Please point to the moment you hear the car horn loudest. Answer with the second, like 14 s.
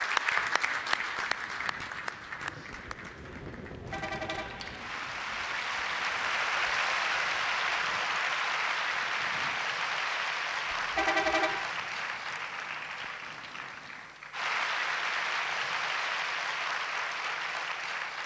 11 s.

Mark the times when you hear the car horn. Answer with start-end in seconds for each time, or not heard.
3.9-4.7, 10.9-11.7.